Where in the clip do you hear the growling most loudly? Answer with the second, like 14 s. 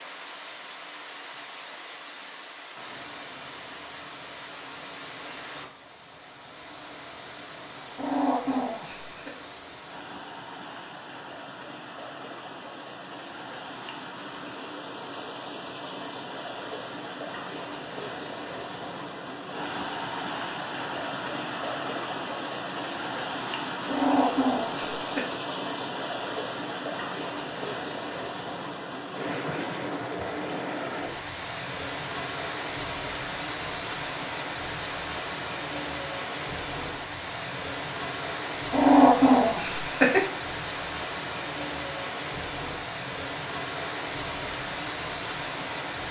39 s.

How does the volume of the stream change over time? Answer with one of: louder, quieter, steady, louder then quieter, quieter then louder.
louder.